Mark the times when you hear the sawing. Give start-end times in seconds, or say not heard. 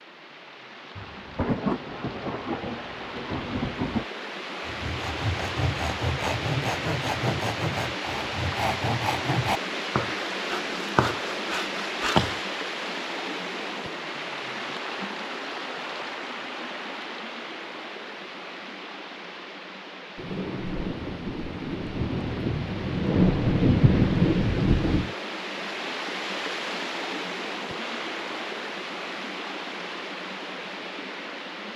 4.7-12.4.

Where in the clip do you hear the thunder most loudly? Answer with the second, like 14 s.
24 s.